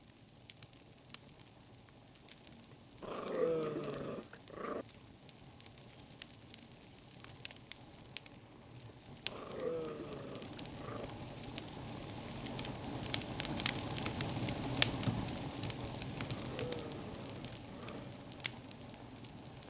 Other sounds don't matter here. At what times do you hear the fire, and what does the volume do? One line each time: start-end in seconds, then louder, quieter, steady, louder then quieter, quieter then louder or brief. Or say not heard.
0.0-19.6 louder then quieter.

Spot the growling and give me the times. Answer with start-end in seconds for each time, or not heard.
3.0-4.8, 9.2-11.1, 16.2-18.0.